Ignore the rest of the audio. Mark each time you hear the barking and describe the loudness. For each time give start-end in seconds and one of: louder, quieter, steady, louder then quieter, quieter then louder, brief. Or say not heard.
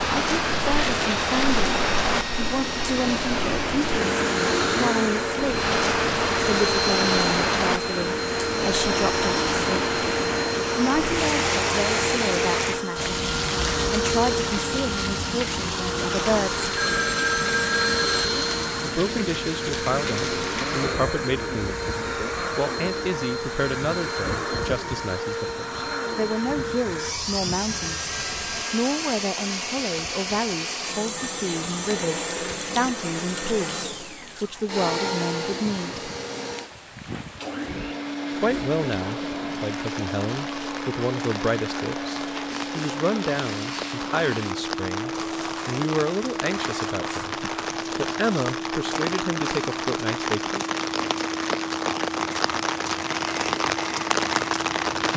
not heard.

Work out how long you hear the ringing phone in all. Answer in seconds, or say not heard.
3 s.